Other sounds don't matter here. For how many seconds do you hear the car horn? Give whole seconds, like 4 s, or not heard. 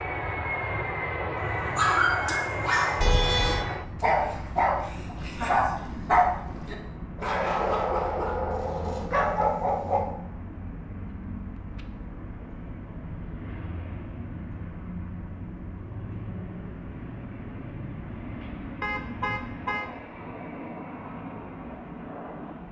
2 s.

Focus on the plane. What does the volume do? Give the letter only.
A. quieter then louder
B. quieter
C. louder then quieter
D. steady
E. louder
B.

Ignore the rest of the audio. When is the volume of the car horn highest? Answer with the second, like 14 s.
3 s.